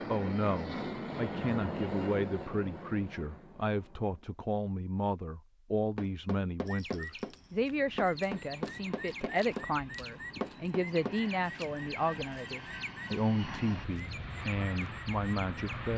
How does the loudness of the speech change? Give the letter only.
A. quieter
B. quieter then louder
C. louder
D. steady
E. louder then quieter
D.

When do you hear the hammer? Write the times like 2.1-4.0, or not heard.
6.0-11.2.